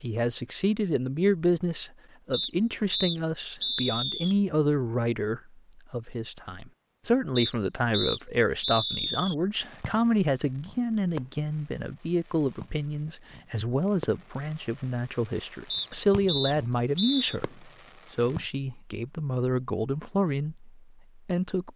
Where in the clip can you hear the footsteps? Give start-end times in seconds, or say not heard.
not heard.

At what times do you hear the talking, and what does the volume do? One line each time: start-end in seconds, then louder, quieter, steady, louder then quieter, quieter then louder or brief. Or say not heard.
0.0-21.7 steady.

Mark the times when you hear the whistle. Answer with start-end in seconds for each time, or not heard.
2.3-4.3, 7.3-9.3, 15.7-17.4.